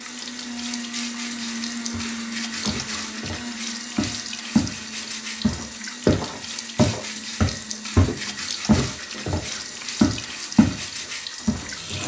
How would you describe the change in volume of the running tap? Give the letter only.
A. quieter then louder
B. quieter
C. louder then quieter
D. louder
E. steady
E.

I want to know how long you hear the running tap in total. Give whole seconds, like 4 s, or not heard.
12 s.